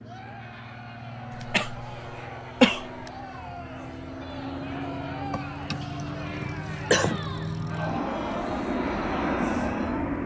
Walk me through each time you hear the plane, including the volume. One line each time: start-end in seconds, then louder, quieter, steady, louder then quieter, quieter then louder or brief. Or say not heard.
0.0-10.2 louder.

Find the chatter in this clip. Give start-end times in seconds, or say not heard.
0.0-10.2.